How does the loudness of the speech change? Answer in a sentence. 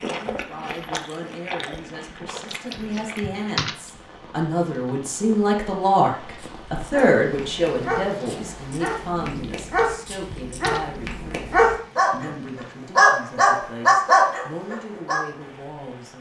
The loudness of the speech goes up, then down.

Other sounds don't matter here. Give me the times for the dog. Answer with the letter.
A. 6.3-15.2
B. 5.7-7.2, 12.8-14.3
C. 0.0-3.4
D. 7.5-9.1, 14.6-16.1
A.